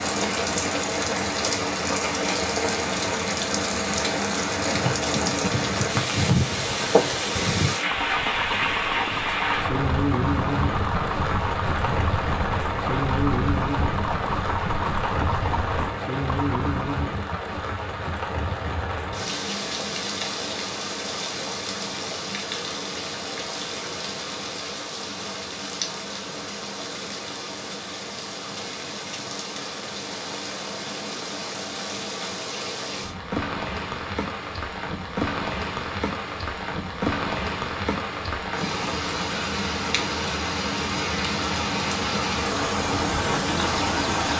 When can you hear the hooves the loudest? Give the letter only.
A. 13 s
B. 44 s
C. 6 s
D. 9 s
C.